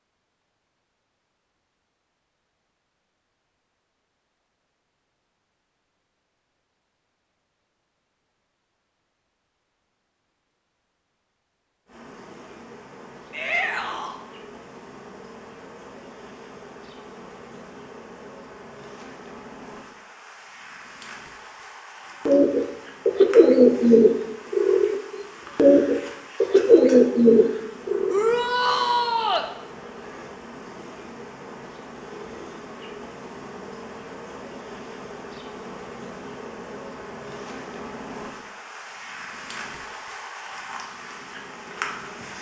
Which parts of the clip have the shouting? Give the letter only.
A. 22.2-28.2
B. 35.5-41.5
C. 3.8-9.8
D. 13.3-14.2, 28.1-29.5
D.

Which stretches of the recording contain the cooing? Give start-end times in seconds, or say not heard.
22.2-28.2.